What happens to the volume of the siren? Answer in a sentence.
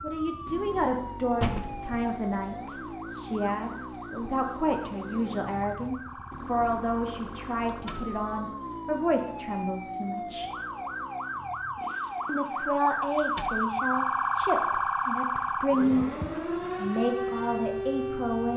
The loudness of the siren goes up.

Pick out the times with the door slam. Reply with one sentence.
You can hear the door slam from 1.4 to 2.1 s, from 7.7 to 8.1 s and from 13.2 to 13.6 s.